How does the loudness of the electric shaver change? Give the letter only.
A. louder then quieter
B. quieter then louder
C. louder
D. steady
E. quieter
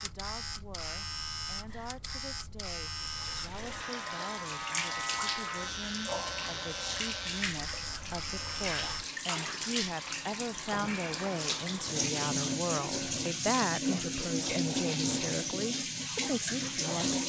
D.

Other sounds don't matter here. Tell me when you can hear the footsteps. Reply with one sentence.
The footsteps can't be heard in this clip.